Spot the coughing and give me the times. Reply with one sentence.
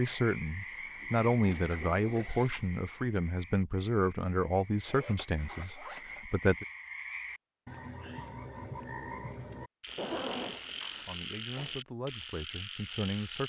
The coughing can't be heard in this clip.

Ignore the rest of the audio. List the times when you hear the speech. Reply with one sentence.
The speech can be heard from 0.0 to 6.7 s and from 11.1 to 13.4 s.